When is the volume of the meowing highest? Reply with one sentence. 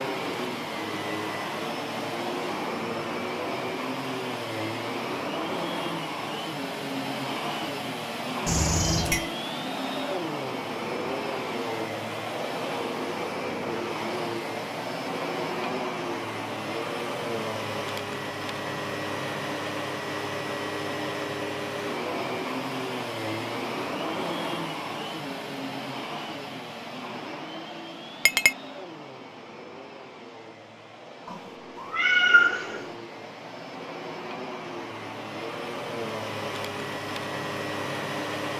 The volume of the meowing peaks at 32 seconds.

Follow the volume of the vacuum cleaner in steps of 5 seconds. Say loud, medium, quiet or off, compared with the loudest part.
loud, loud, loud, loud, loud, medium, medium, loud.